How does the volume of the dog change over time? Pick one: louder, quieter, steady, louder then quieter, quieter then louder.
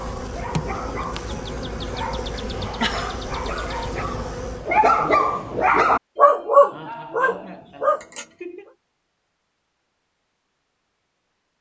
louder.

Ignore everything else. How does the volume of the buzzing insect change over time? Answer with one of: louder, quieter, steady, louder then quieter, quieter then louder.
steady.